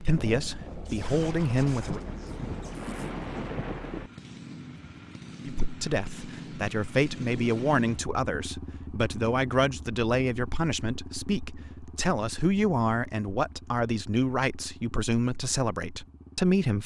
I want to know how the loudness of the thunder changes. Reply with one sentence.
The volume of the thunder goes up.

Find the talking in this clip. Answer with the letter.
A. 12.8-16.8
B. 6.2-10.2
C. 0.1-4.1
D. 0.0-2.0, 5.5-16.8
D.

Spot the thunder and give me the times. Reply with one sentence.
You can hear the thunder from 0.1 to 4.1 s.